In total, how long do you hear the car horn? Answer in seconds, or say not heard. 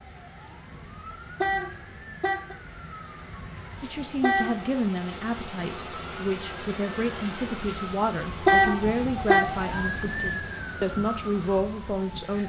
3 s.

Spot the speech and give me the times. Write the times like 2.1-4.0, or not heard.
3.8-12.4.